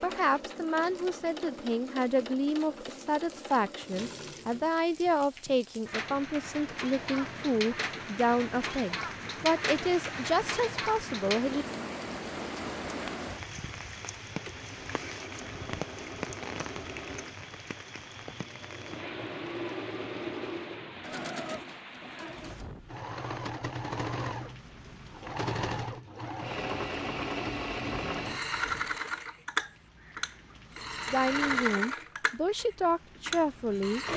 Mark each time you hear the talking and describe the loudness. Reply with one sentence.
The talking can be heard from 0.0 to 11.7 s, at a steady volume; and briefly from 31.1 to 34.0 s.